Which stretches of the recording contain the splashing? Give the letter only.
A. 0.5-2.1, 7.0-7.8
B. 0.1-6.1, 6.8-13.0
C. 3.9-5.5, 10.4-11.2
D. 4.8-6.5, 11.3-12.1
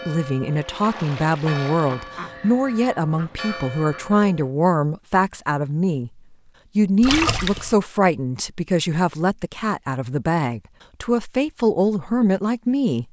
A.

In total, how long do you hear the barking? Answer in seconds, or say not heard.
not heard.